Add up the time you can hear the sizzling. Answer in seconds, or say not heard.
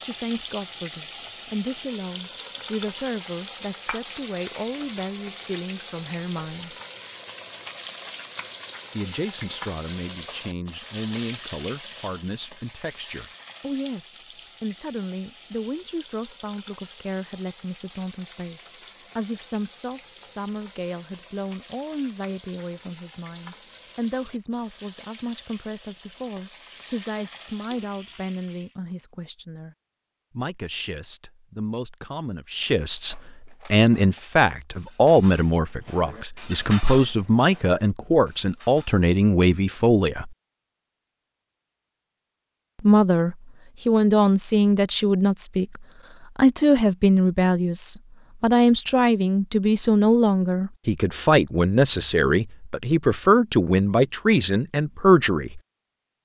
29 s.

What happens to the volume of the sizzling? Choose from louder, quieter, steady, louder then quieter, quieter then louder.
quieter.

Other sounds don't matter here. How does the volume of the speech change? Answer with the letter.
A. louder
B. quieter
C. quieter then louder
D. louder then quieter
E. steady
A.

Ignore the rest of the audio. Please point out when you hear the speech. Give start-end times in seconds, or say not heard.
0.0-6.8, 8.9-29.8, 30.4-40.4, 42.8-55.6.